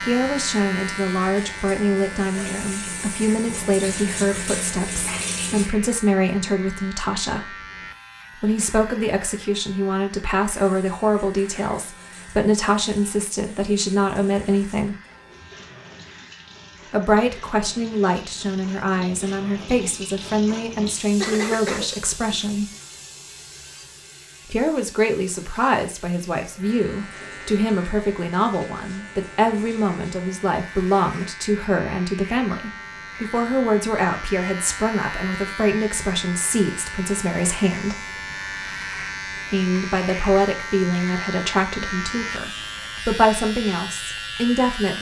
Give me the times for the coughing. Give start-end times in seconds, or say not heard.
21.2-22.4.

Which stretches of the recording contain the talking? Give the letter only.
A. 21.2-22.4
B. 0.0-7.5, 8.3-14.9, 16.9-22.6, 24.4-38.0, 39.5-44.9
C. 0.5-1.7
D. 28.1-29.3
B.